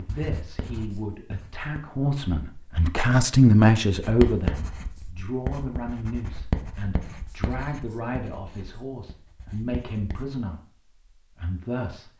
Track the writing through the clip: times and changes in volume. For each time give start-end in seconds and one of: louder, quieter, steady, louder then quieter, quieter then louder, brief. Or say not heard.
0.1-1.8 brief
4.0-10.2 quieter.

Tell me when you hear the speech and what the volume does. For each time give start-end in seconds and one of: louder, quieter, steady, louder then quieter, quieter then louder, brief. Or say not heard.
0.0-12.1 louder then quieter.